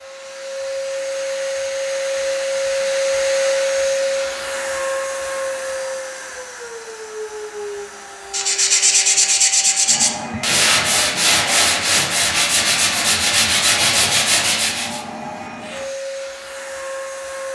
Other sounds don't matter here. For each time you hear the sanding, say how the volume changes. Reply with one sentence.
The sanding can be heard from 8.3 to 15.1 s, at a steady volume.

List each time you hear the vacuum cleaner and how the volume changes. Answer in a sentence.
You can hear the vacuum cleaner from 0.0 to 17.5 s, getting quieter.